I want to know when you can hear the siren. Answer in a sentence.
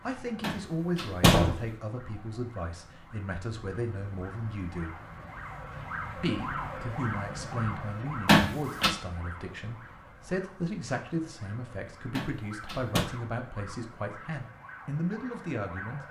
You can hear the siren from 0.0 to 16.0 s.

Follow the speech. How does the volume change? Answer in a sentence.
The loudness of the speech stays about the same.